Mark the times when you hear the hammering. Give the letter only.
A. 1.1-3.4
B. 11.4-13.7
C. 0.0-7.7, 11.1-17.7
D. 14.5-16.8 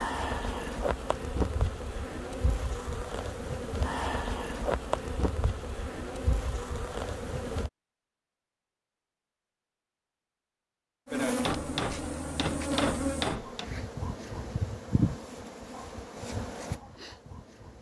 B.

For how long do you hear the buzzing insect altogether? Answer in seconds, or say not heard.
14 s.